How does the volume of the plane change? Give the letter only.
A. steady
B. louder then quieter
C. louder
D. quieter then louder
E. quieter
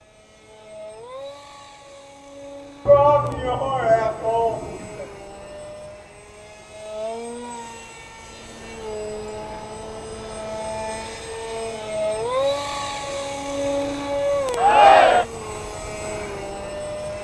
C.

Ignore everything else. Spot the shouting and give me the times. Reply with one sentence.
The shouting can be heard from 2.9 to 5.0 s and from 14.6 to 15.2 s.